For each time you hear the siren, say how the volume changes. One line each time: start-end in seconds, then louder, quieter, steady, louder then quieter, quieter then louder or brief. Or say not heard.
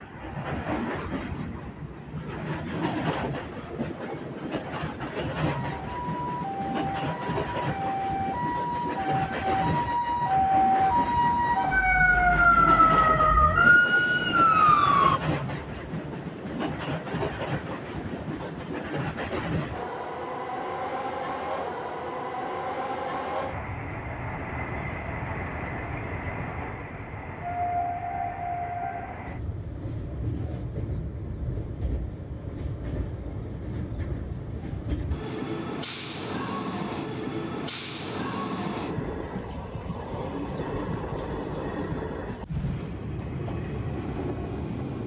5.5-15.2 louder.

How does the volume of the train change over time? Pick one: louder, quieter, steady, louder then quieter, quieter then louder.
steady.